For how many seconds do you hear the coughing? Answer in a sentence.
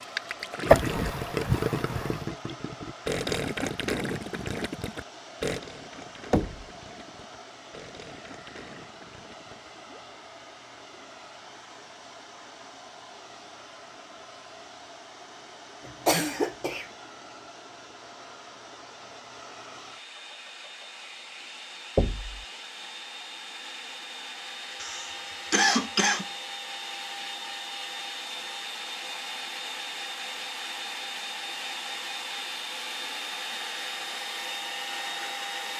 You can hear the coughing for 4 seconds altogether.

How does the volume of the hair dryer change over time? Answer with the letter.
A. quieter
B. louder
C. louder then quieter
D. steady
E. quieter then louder
B.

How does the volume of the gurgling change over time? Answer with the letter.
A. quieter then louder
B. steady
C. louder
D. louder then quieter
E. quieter
E.